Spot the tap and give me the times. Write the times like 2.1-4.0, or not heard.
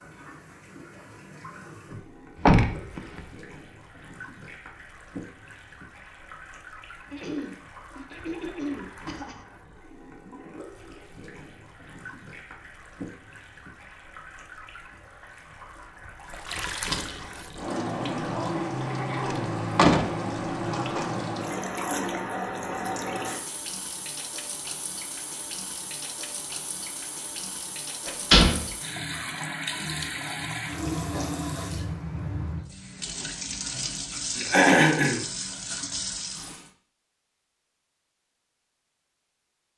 0.0-36.7.